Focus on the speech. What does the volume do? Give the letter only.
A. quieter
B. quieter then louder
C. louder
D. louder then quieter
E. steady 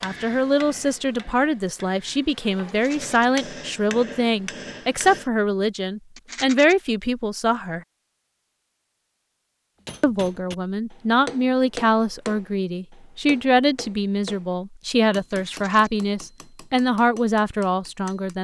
E.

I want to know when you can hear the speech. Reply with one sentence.
The speech can be heard from 0.0 to 7.8 s and from 10.0 to 18.3 s.